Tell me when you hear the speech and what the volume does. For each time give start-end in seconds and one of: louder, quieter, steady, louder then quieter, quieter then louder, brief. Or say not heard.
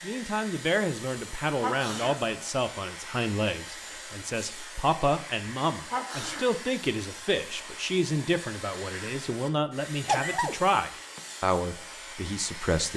0.0-12.9 steady.